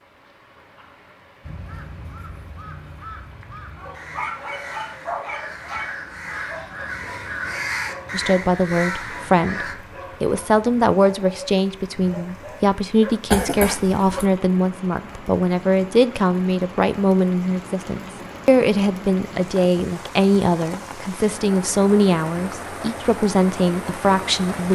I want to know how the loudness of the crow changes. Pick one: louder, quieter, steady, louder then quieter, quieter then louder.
louder.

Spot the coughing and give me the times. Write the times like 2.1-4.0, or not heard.
13.3-14.3.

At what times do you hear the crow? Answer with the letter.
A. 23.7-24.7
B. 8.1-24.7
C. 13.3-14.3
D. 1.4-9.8
D.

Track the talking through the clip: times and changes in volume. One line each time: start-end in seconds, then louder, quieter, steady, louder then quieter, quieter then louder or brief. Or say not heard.
8.1-24.7 steady.